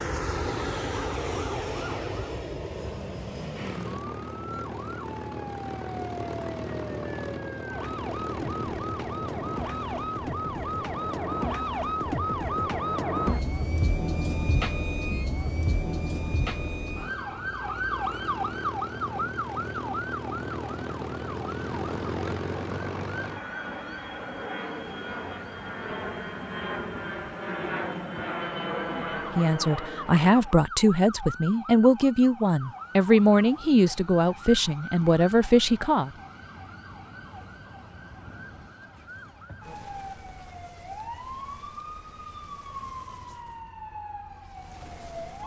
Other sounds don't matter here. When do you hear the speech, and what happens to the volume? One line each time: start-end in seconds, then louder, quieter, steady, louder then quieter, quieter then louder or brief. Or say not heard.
28.9-36.1 steady.